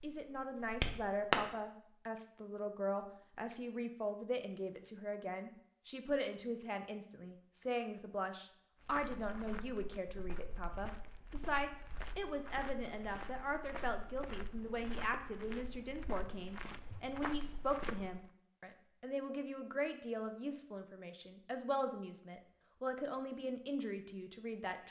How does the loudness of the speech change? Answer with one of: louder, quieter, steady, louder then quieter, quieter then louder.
steady.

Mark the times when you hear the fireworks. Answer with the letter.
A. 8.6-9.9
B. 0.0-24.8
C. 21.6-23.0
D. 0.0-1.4
D.